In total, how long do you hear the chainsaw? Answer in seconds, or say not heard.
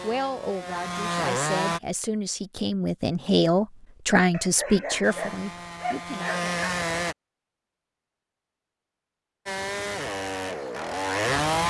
6 s.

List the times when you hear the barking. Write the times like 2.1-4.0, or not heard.
4.3-6.8.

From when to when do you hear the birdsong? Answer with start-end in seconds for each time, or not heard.
not heard.